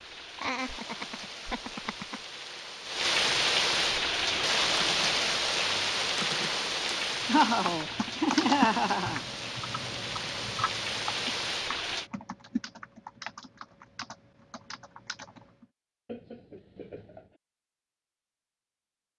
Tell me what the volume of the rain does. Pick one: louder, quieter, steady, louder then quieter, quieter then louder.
louder then quieter.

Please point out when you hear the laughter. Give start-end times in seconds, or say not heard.
0.3-2.2, 7.2-9.2, 16.1-17.4.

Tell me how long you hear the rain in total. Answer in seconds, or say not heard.
12 s.